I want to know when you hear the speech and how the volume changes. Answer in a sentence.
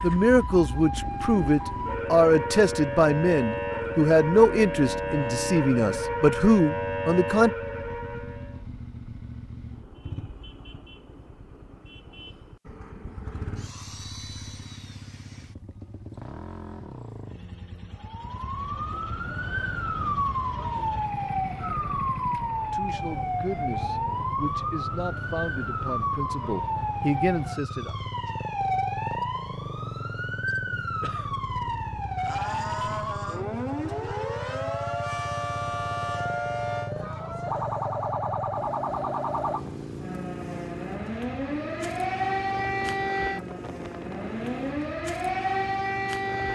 The speech can be heard from 0.0 to 7.5 s, at a steady volume; and from 22.7 to 27.9 s, getting louder.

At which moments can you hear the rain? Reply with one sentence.
The rain can't be heard in this clip.